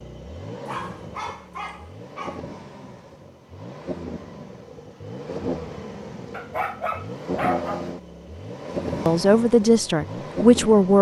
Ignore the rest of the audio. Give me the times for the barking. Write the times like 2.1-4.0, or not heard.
0.7-2.4, 6.3-7.8.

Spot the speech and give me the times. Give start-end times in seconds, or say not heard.
9.1-10.9.